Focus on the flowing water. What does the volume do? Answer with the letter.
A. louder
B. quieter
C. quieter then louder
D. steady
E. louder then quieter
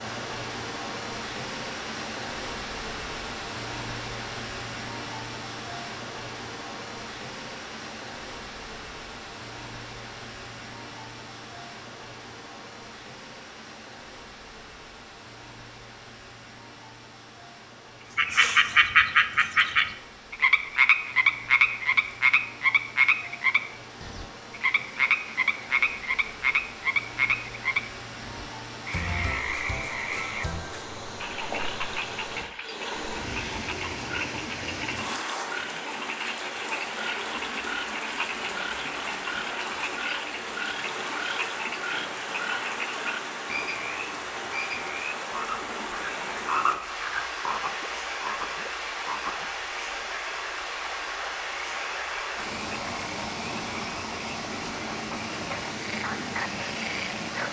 C.